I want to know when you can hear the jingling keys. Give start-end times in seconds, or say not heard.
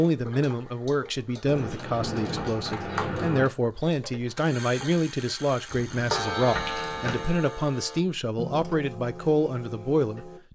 1.4-3.5, 5.7-7.3.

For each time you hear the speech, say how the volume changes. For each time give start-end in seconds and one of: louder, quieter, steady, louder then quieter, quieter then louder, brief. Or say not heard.
0.0-10.5 steady.